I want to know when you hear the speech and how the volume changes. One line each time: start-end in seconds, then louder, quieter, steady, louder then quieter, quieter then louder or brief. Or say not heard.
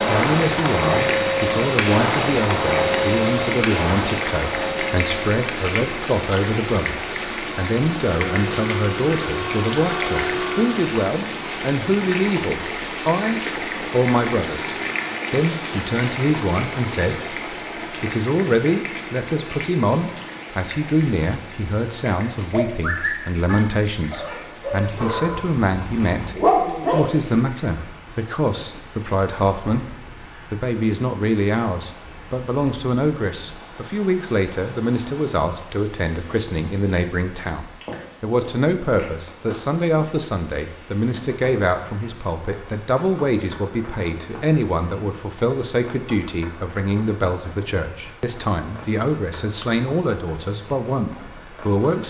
0.0-52.0 steady.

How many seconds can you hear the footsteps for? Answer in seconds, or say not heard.
not heard.